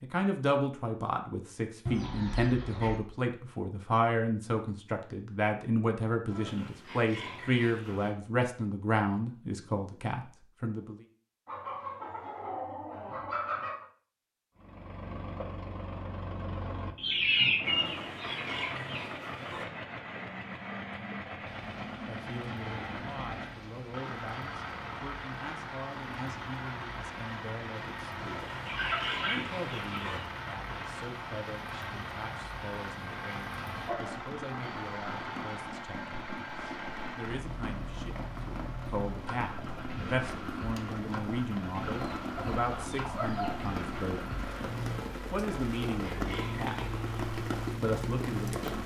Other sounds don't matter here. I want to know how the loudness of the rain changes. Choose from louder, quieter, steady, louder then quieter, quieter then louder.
louder.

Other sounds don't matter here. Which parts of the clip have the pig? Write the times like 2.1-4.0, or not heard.
6.2-8.2, 17.6-19.6, 28.1-30.2, 45.4-47.0.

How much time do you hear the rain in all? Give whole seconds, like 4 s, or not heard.
27 s.